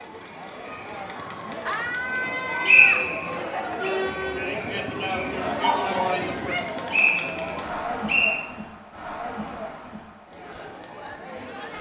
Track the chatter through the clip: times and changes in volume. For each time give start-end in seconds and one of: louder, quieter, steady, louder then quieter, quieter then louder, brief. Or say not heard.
0.0-11.7 louder then quieter.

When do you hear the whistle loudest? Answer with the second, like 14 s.
3 s.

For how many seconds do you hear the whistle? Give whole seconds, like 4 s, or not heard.
3 s.